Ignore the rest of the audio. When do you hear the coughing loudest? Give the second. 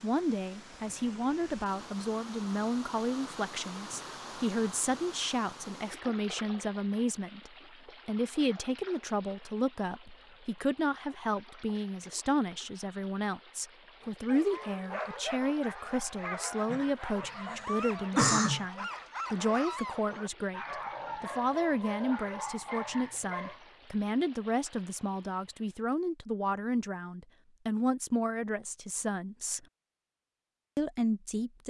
18 s.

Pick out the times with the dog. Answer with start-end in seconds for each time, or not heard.
14.0-23.6.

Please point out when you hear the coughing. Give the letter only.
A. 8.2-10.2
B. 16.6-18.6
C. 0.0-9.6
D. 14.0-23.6
B.